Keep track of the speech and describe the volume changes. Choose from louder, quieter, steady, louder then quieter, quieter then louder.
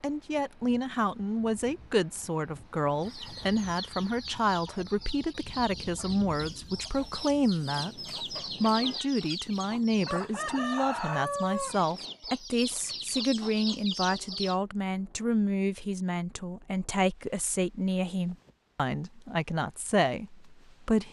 steady.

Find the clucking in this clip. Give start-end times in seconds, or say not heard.
3.0-14.6.